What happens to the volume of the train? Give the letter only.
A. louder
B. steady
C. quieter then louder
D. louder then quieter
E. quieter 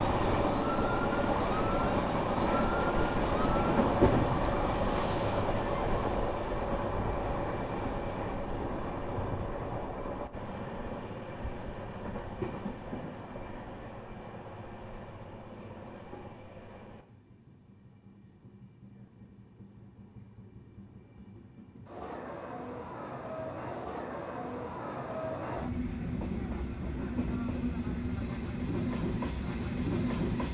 C.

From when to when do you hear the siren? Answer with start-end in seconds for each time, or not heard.
0.0-6.2.